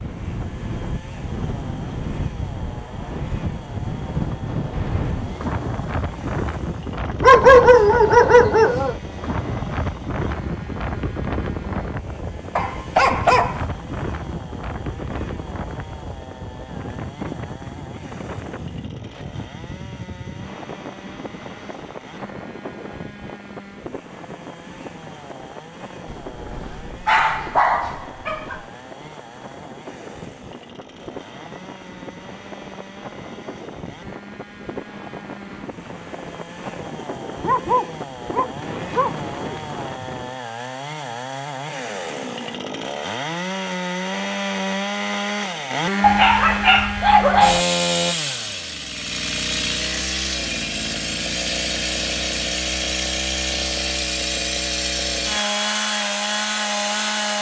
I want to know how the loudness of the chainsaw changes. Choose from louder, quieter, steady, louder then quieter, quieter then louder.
louder.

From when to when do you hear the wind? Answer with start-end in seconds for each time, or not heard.
0.0-40.4.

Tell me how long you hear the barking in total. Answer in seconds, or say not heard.
9 s.